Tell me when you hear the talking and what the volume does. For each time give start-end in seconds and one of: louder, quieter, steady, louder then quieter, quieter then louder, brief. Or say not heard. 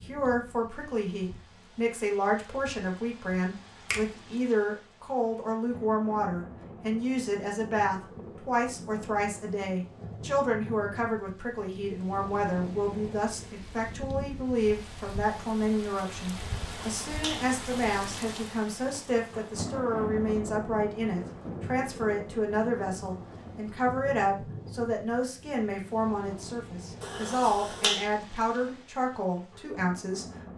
0.1-30.2 steady.